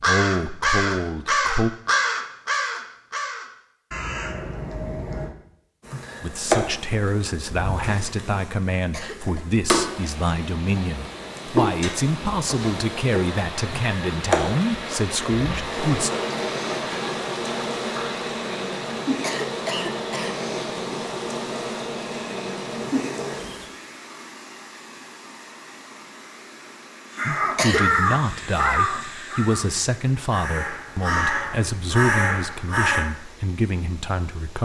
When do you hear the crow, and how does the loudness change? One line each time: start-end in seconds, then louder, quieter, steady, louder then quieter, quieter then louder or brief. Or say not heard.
0.0-5.3 quieter
27.1-33.0 quieter then louder.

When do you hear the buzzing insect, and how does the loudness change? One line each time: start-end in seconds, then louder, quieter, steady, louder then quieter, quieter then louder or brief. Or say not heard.
5.8-23.7 steady.